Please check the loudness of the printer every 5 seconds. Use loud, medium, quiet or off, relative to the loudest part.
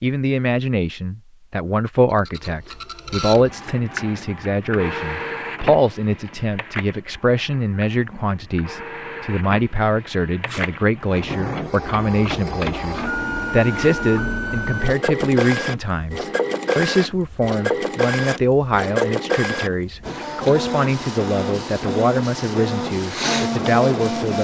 medium, medium, loud, loud, loud.